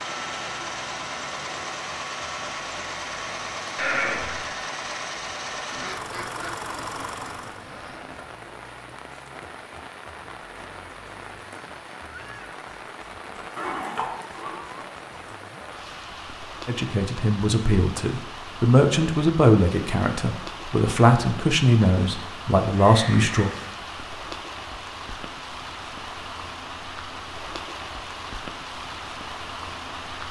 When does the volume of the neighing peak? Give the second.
4 s.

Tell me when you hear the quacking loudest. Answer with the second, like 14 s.
6 s.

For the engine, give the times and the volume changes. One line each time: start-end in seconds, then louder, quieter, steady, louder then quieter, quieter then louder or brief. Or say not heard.
0.0-7.7 steady.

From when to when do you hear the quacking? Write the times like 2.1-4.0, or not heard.
5.7-8.3.